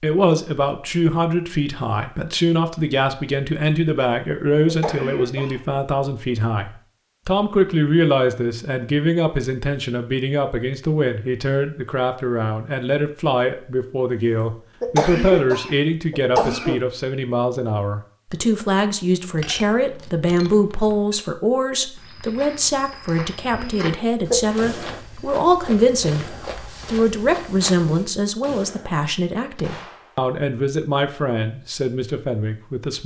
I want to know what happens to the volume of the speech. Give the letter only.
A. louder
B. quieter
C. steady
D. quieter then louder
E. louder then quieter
C.